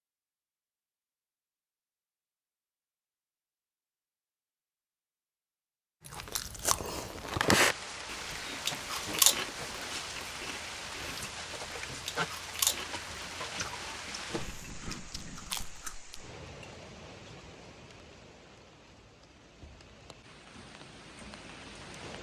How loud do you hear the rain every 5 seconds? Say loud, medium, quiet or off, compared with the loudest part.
off, loud, loud, medium, medium.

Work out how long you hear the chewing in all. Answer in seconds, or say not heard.
10 s.